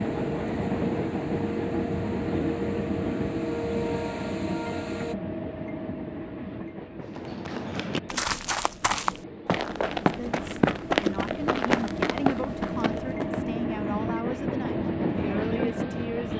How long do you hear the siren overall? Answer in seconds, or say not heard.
5 s.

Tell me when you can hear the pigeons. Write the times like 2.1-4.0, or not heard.
not heard.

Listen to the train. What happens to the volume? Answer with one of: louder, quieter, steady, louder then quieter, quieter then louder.
quieter then louder.